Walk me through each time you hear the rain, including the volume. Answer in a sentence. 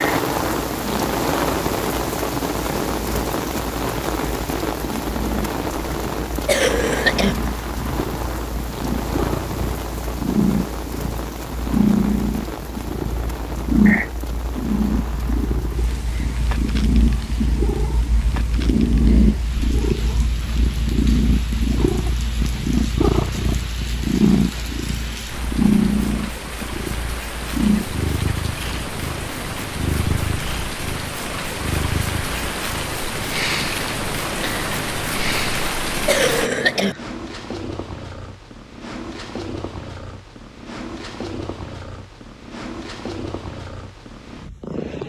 The rain can be heard from 0.0 to 36.5 s, getting quieter then louder.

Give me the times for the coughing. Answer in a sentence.
The coughing can be heard from 6.5 to 7.3 s and from 36.0 to 37.0 s.